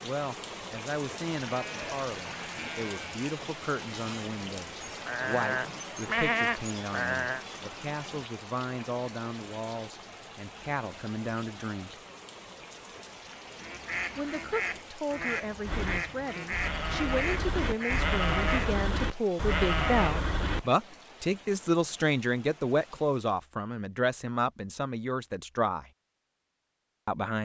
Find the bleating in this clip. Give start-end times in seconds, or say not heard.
1.4-7.5, 15.7-20.6.